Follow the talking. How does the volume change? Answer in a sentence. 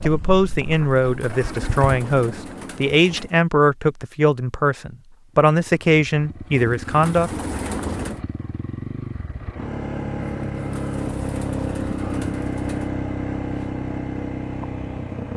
The loudness of the talking stays about the same.